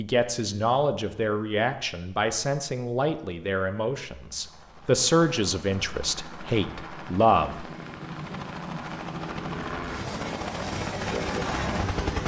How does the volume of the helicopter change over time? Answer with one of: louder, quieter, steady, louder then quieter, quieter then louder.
louder.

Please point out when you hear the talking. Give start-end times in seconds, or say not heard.
0.0-7.7.